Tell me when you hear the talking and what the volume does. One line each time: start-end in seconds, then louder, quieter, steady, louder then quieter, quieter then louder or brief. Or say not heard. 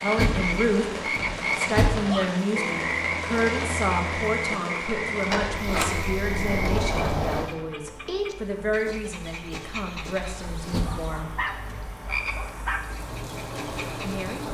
0.0-11.4 quieter
14.0-14.4 brief.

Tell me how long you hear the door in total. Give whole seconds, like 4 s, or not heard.
5 s.